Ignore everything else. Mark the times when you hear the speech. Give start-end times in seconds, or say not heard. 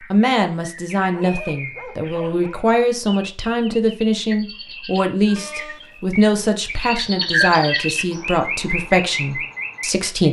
0.1-10.2.